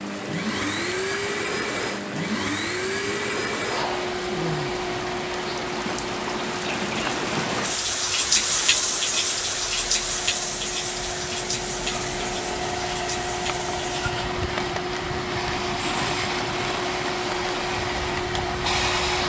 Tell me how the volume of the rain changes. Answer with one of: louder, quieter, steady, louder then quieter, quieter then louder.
louder then quieter.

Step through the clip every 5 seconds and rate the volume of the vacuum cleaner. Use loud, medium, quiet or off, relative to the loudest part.
loud, medium, loud, loud.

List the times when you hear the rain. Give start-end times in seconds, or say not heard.
0.0-19.2.